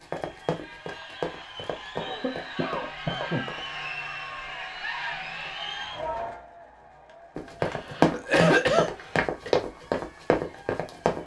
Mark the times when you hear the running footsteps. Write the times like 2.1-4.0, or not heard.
0.0-3.7, 7.3-11.2.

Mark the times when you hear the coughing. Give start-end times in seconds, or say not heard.
1.9-3.5, 7.6-9.5.